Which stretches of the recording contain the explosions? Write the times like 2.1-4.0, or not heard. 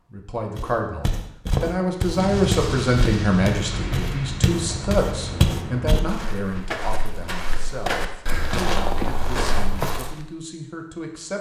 2.1-6.0.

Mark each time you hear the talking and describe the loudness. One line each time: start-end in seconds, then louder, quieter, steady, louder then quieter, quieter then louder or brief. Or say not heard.
0.1-11.3 quieter.